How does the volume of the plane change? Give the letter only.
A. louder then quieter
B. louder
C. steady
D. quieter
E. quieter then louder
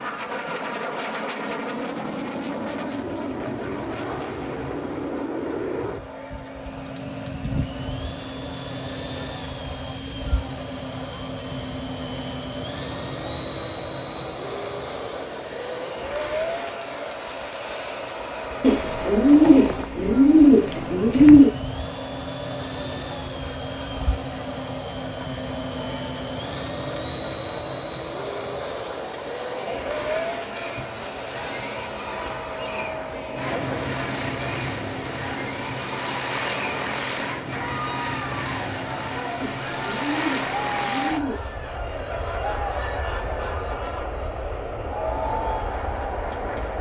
C.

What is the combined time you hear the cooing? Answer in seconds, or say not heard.
5 s.